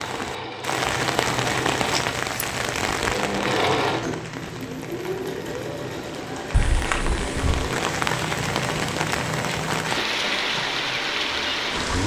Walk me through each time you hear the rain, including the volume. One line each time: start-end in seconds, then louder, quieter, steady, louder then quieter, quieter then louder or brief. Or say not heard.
0.0-12.0 quieter then louder.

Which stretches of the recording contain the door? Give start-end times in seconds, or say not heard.
6.5-7.7.